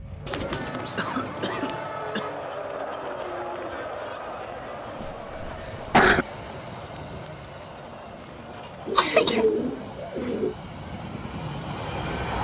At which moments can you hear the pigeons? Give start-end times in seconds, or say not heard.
0.2-1.9, 8.8-10.6.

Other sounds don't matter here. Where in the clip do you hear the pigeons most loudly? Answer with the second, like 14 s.
9 s.